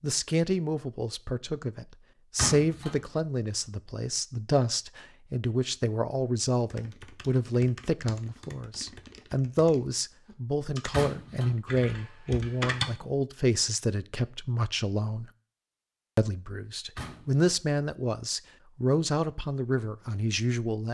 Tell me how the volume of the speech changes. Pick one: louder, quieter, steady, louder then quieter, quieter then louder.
steady.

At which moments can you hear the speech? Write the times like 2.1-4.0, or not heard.
0.0-15.2, 16.1-20.9.